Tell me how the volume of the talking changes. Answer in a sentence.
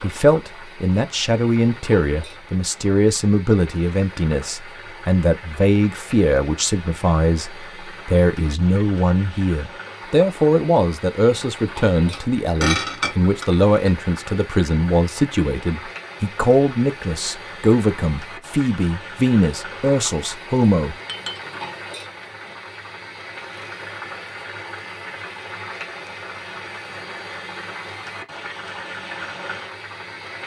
The volume of the talking stays about the same.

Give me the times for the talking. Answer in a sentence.
You can hear the talking from 0.0 to 20.9 s.